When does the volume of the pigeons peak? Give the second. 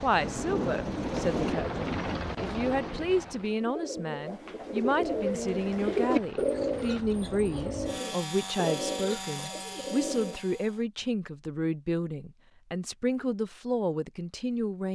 6 s.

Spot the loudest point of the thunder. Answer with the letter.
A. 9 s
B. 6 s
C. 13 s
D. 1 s
D.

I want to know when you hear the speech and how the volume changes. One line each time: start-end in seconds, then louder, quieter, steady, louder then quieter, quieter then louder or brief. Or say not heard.
0.0-14.8 steady.